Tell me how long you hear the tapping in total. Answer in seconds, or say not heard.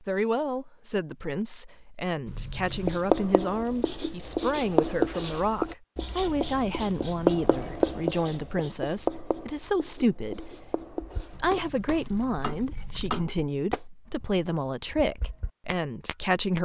6 s.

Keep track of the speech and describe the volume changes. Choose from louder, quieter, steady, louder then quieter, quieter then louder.
steady.